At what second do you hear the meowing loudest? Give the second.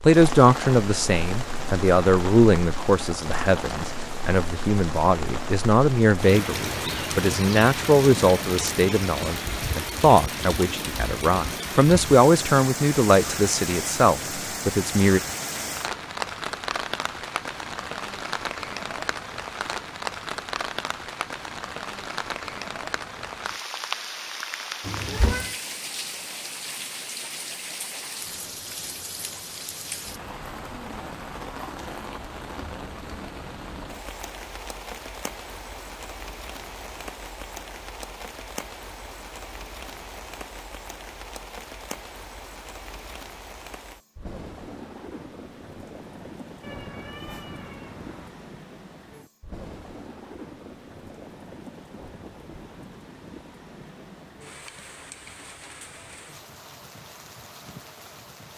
25 s.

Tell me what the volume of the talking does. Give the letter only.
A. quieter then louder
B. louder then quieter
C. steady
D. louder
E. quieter
C.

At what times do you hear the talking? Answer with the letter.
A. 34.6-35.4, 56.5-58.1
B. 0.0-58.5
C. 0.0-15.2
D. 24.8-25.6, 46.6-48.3
C.